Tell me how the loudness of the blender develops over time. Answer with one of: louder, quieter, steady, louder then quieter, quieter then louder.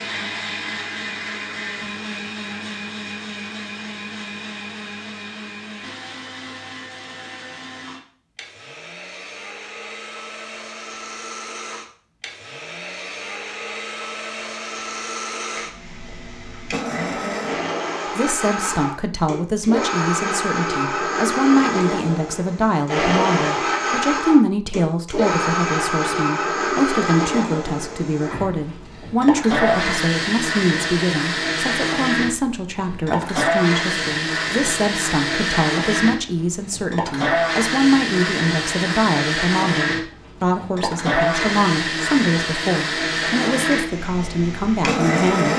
louder.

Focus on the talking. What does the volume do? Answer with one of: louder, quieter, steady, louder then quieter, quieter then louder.
steady.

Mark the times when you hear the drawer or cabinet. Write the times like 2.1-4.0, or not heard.
not heard.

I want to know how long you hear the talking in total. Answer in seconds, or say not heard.
27 s.